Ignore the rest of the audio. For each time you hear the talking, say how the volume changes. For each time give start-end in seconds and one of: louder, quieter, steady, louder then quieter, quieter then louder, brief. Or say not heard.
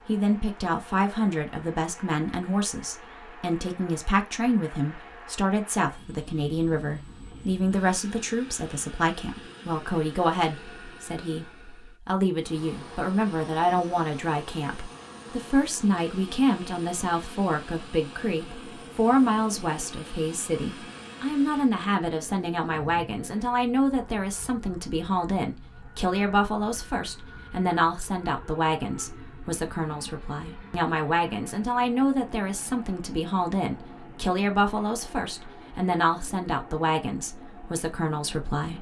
0.1-38.7 steady.